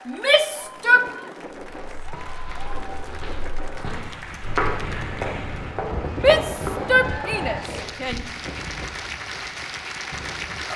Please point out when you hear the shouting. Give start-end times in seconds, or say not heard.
0.1-1.1, 6.2-8.2.